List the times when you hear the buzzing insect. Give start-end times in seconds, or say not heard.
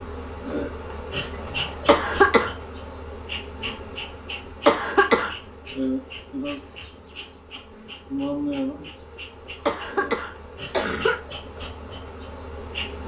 0.0-13.0.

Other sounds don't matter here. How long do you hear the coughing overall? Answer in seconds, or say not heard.
3 s.